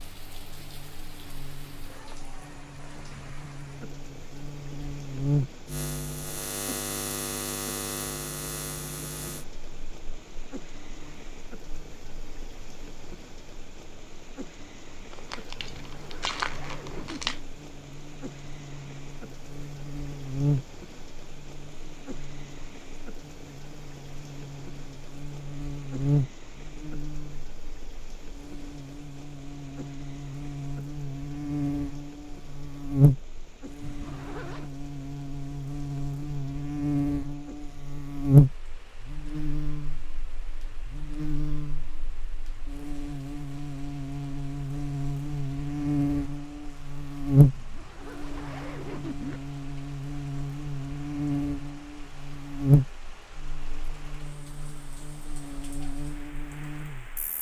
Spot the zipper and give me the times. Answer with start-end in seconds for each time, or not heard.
15.8-17.4, 33.8-34.7, 47.5-49.4.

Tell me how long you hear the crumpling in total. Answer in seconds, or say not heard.
2 s.